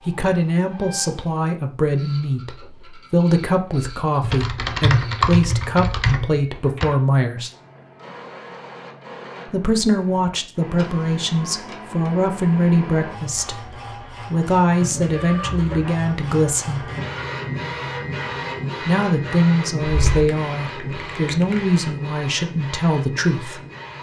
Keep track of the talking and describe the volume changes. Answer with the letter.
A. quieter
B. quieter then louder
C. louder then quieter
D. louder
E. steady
E.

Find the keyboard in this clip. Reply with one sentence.
You can hear the keyboard from 4.2 to 6.9 s and from 19.9 to 21.8 s.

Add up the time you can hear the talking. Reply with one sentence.
You can hear the talking for 20 seconds altogether.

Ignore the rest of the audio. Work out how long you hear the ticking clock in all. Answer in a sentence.
You can't hear the ticking clock here.